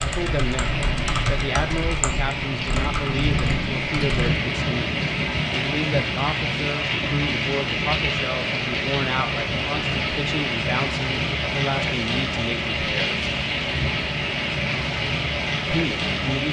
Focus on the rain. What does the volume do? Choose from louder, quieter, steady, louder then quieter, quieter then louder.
steady.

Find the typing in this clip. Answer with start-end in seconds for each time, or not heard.
0.0-4.3.